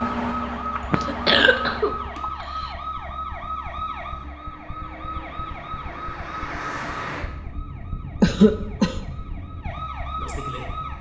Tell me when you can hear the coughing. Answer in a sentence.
The coughing can be heard from 0.8 to 2.5 s and from 8.2 to 8.9 s.